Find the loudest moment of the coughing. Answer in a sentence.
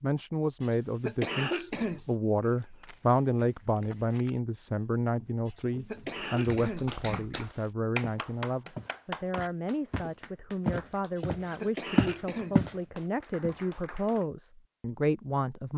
The loudest moment of the coughing is at 1 second.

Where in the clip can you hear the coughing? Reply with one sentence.
The coughing can be heard from 0.6 to 2.0 s, from 5.5 to 7.3 s and from 11.2 to 12.6 s.